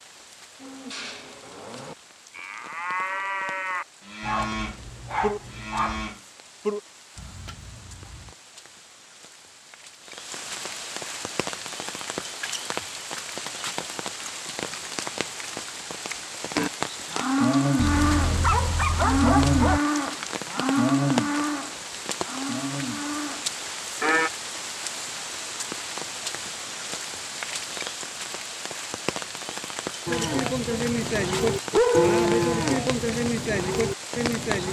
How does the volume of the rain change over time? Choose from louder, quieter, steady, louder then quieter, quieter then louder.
louder.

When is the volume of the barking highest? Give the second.
32 s.